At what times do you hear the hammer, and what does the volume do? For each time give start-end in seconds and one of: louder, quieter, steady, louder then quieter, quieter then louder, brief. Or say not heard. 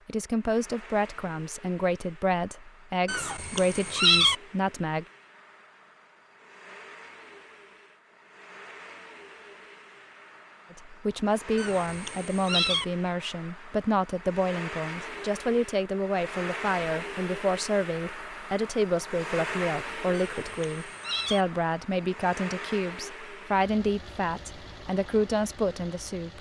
not heard.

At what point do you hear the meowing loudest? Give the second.
4 s.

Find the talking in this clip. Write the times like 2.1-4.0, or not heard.
0.1-5.0, 10.7-26.3.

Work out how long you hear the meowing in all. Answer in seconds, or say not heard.
4 s.